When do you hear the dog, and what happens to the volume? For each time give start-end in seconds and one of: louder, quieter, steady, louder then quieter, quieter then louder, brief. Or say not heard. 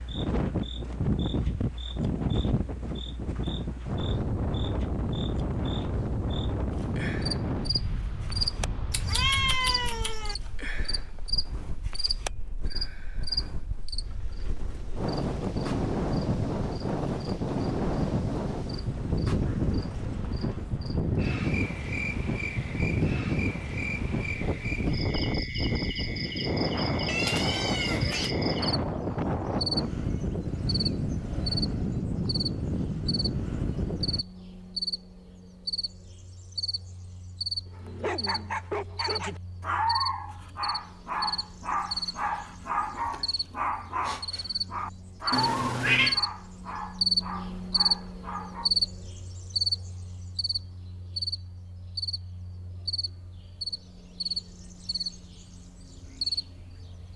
37.8-48.7 quieter.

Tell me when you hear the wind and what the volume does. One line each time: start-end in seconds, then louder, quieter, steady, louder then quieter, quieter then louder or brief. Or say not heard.
0.0-34.2 quieter then louder.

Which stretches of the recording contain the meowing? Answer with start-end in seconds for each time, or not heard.
8.9-10.3, 27.1-28.3, 45.3-46.2.